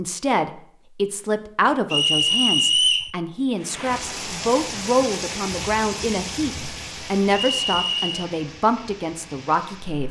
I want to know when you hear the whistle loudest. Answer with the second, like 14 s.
3 s.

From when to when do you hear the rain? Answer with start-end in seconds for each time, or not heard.
3.5-10.0.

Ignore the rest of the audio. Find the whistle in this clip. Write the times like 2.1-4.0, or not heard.
1.9-3.1, 7.5-8.2.